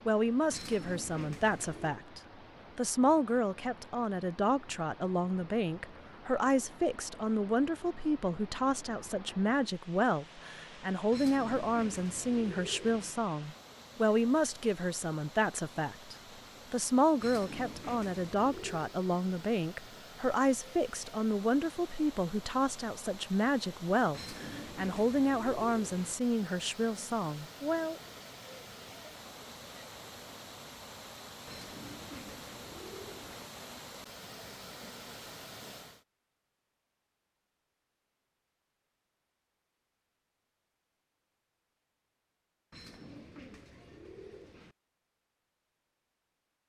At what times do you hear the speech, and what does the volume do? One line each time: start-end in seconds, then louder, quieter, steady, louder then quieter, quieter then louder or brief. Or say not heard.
0.1-28.0 steady.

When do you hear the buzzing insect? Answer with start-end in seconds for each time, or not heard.
not heard.